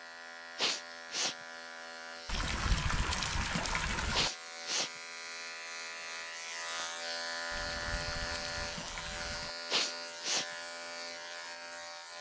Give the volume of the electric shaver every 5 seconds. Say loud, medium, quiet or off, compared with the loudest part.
medium, loud, loud.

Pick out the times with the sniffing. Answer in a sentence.
You can hear the sniffing from 0.6 to 1.4 s, from 4.1 to 4.9 s and from 9.7 to 10.4 s.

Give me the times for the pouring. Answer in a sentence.
The pouring can be heard from 2.2 to 4.3 s and from 7.5 to 9.6 s.